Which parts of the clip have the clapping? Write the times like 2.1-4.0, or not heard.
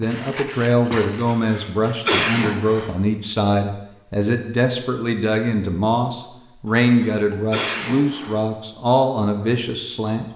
not heard.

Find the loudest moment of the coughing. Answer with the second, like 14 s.
2 s.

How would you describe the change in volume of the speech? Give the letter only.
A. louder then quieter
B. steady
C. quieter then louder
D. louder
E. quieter
B.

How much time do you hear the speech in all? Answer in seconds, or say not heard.
10 s.